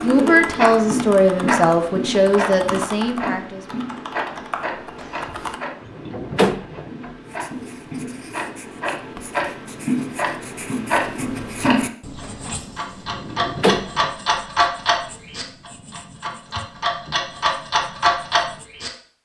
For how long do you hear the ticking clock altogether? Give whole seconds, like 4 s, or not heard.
19 s.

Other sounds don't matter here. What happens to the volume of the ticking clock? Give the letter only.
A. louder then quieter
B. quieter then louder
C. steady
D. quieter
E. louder
B.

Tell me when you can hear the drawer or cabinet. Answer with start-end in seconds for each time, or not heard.
5.0-7.2, 12.2-14.3.